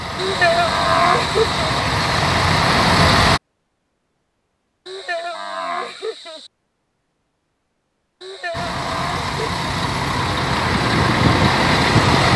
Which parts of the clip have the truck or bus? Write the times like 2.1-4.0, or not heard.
0.0-3.4, 8.5-12.3.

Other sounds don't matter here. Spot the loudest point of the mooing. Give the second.
1 s.